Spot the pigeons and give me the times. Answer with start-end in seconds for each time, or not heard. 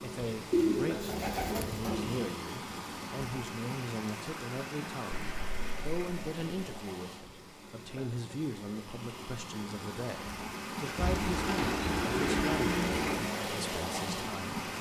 0.5-2.2, 5.1-6.6, 10.9-13.3.